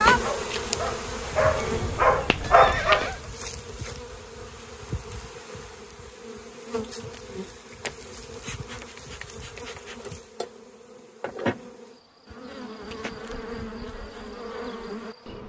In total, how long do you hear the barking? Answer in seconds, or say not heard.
3 s.